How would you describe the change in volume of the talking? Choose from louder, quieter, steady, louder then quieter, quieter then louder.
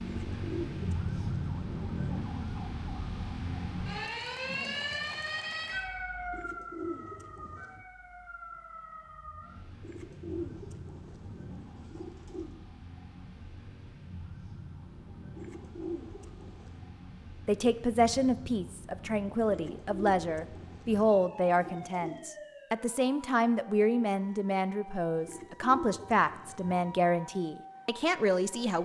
steady.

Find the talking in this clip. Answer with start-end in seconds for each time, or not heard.
17.4-28.7.